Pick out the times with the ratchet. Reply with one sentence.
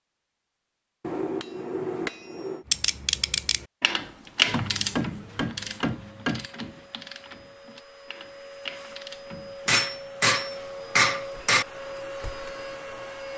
The ratchet can be heard from 2.6 to 9.8 s.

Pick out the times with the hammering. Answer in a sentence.
The hammering can be heard from 1.0 to 2.6 s, from 4.5 to 6.5 s and from 9.7 to 11.7 s.